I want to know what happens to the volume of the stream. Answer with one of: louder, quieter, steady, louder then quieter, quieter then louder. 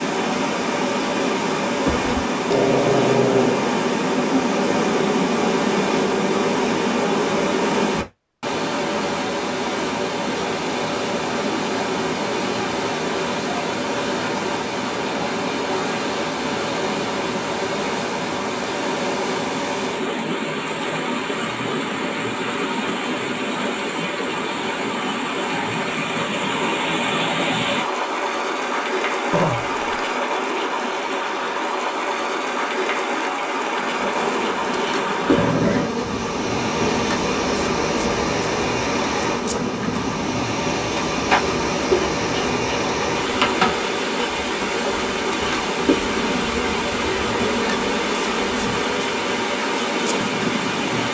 steady.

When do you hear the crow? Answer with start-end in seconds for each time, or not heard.
not heard.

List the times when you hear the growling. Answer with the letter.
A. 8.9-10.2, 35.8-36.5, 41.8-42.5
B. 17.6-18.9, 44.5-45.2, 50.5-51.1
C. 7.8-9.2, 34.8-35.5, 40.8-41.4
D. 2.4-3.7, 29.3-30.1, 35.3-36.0
D.